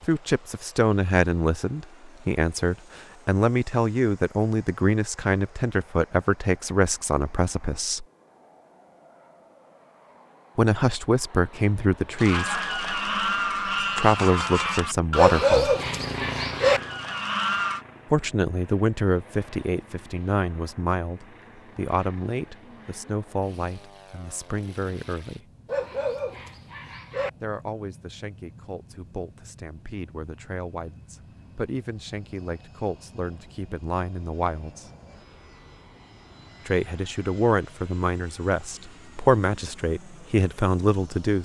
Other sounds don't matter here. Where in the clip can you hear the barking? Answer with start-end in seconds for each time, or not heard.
15.2-16.8, 25.6-27.3.